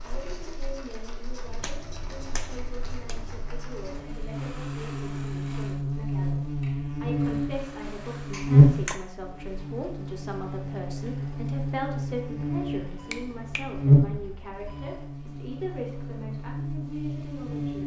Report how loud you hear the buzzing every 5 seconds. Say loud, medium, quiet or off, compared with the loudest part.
quiet, loud, loud, medium.